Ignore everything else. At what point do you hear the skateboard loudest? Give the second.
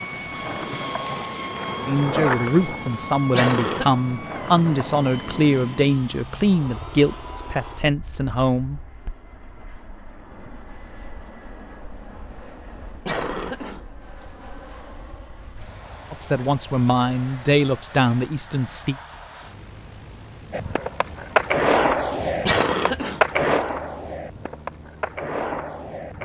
22 s.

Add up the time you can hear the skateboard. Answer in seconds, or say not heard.
11 s.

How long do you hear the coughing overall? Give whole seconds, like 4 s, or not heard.
3 s.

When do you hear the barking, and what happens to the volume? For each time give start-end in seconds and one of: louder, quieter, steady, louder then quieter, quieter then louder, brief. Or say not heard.
not heard.